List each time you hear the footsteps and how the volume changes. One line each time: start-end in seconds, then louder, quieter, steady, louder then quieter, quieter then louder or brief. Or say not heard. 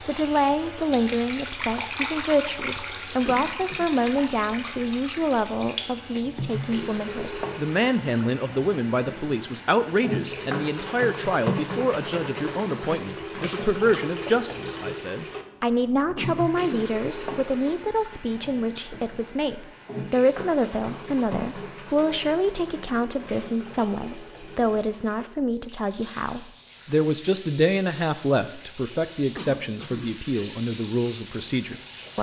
not heard.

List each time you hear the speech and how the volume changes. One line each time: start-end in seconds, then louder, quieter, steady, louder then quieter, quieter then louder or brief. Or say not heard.
0.1-32.1 steady.